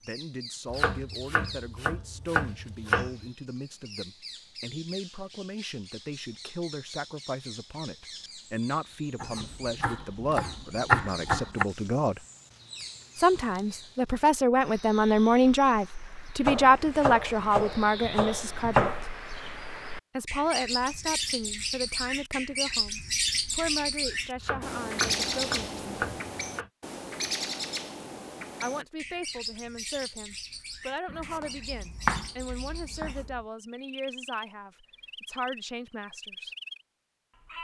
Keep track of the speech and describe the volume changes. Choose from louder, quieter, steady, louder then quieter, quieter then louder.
louder then quieter.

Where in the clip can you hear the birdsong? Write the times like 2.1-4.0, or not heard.
0.0-37.5.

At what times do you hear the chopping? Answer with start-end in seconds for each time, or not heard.
0.7-3.3, 9.2-11.7, 16.4-19.1, 24.4-26.7, 31.1-33.4.